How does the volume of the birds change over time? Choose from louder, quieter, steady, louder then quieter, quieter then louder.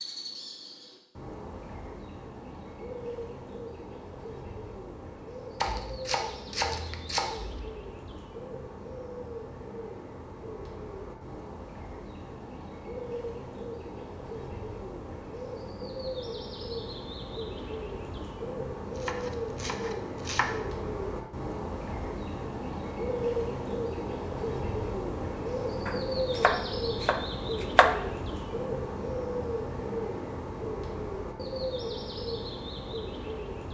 louder.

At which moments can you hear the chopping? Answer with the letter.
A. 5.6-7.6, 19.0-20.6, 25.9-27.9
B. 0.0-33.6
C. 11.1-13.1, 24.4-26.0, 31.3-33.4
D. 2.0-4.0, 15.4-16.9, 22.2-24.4
A.